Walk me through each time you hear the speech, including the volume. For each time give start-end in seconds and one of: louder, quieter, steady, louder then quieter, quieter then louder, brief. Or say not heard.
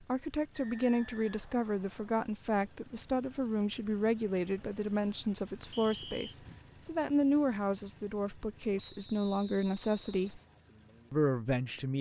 0.1-10.4 steady
11.1-11.9 brief.